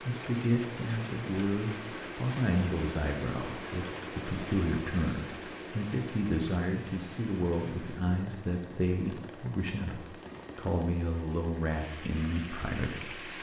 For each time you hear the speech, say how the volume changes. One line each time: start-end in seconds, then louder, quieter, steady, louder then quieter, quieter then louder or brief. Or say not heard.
0.0-13.2 steady.